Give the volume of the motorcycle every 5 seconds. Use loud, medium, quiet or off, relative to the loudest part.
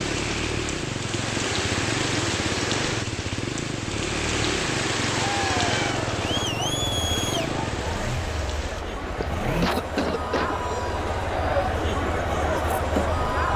loud, loud, medium.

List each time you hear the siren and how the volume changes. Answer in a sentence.
The siren can't be heard in this clip.